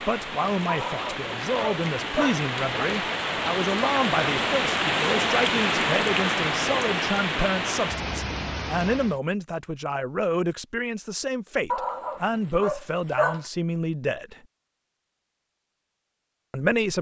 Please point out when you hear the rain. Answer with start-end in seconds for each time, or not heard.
0.0-9.2.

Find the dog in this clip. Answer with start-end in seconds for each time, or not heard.
0.7-2.9, 11.7-13.4.